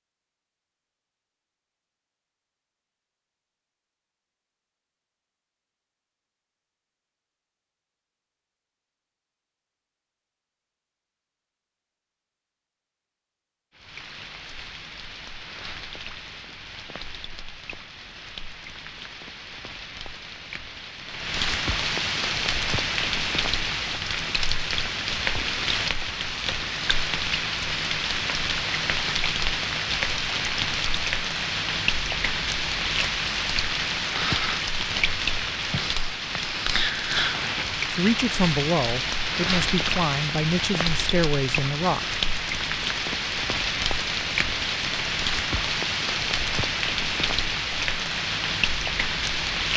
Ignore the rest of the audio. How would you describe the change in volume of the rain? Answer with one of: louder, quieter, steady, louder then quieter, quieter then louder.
louder.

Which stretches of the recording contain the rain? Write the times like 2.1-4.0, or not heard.
13.7-49.7.